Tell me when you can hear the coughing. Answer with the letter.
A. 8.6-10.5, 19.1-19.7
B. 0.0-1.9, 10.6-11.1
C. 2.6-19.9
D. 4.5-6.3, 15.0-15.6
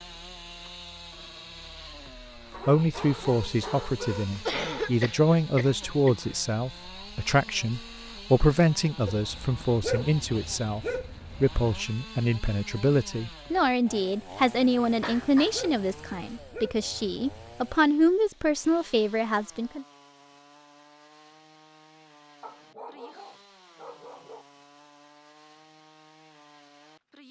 D.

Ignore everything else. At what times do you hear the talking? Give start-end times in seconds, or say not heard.
2.6-19.9.